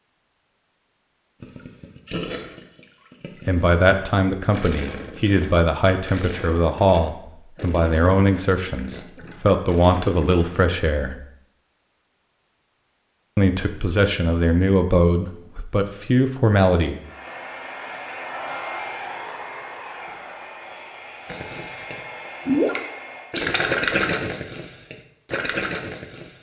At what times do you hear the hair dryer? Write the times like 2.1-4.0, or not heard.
16.9-23.4.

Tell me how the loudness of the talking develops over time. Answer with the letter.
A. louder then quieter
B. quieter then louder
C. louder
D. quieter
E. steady
E.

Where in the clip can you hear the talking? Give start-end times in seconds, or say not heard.
3.5-11.2, 13.3-17.0.